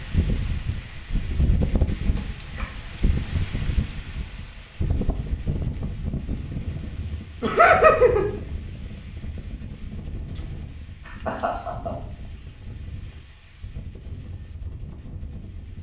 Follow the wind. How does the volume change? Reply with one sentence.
The loudness of the wind goes down.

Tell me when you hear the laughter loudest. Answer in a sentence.
The volume of the laughter peaks at 8 seconds.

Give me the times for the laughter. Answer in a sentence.
You can hear the laughter from 2.0 to 2.7 s, from 7.4 to 8.2 s and from 11.1 to 11.9 s.